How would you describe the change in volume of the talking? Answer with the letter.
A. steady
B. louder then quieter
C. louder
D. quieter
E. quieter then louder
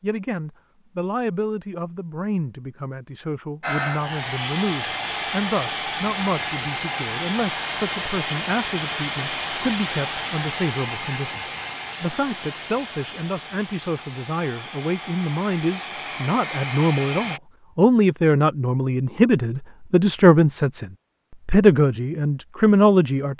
C.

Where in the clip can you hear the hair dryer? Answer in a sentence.
You can hear the hair dryer from 3.6 to 17.4 s.